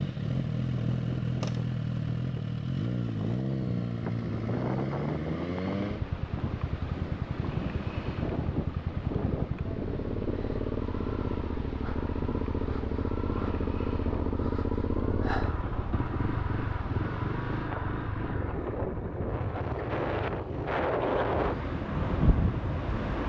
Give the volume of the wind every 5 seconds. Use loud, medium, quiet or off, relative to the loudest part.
medium, medium, medium, medium, loud.